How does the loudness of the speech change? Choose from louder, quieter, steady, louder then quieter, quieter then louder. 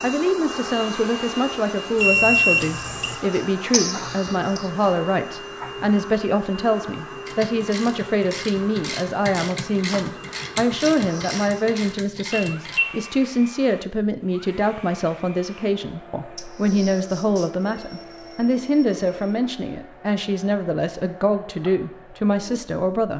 steady.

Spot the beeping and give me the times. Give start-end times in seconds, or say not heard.
1.9-3.1, 12.3-12.9, 17.6-19.4.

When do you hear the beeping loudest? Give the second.
2 s.